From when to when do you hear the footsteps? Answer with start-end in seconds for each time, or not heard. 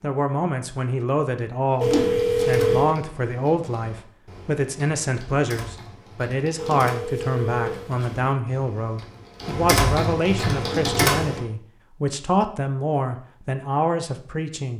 not heard.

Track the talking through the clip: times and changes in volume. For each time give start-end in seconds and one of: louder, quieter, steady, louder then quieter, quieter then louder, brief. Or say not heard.
0.0-14.7 steady.